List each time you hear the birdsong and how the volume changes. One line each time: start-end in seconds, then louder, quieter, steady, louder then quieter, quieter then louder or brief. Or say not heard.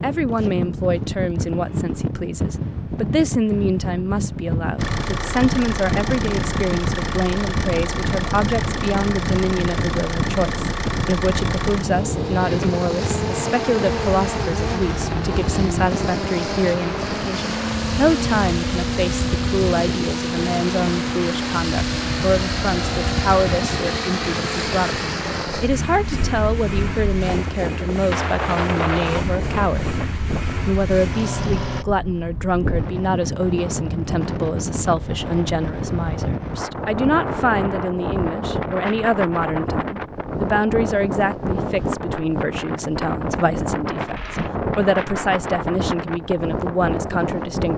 not heard.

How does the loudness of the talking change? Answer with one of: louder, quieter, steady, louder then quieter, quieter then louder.
steady.